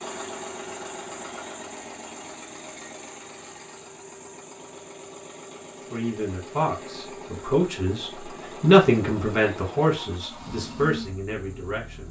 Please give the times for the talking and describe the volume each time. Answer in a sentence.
You can hear the talking from 5.9 to 12.0 s, getting louder then quieter.